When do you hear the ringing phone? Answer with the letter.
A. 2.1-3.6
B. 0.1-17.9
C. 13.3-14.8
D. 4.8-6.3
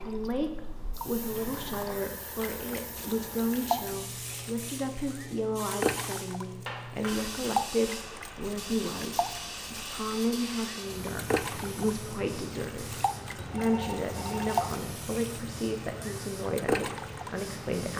C.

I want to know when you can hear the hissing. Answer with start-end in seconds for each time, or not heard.
0.0-17.9.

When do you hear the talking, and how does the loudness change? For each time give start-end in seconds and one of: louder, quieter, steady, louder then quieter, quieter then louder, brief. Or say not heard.
0.1-17.9 steady.